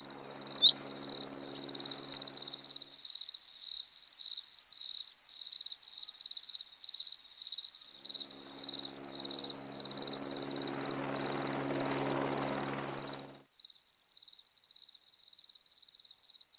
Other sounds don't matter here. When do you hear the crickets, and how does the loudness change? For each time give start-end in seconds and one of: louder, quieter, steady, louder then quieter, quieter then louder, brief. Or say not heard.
0.0-16.5 quieter.